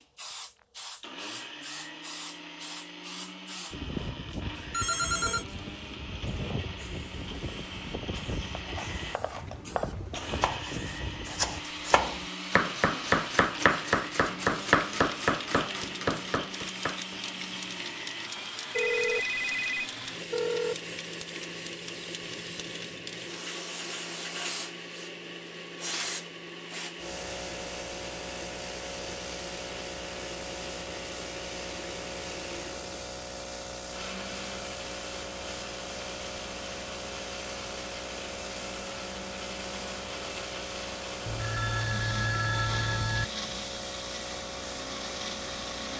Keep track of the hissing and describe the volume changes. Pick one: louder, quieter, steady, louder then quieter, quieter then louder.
steady.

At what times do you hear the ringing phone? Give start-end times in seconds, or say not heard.
4.7-5.5, 18.7-20.8, 41.2-43.2.